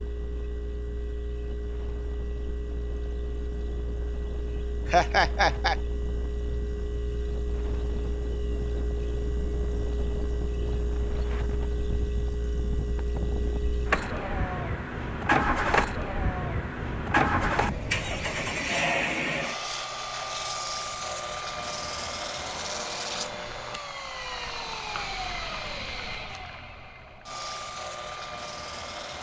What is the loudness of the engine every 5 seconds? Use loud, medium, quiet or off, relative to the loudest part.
quiet, medium, medium, loud, medium, medium.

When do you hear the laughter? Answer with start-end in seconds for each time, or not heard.
4.8-5.8.